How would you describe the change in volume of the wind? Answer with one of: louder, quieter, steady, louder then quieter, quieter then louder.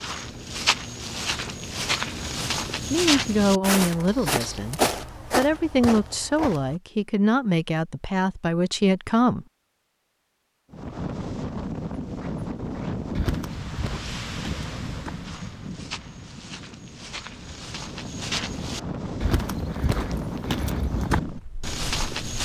quieter then louder.